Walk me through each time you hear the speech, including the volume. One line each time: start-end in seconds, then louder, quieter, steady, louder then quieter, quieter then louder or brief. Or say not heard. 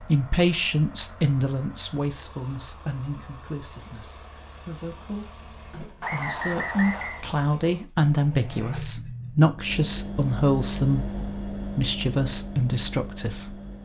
0.0-13.6 quieter then louder.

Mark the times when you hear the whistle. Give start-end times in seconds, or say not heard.
6.0-7.2.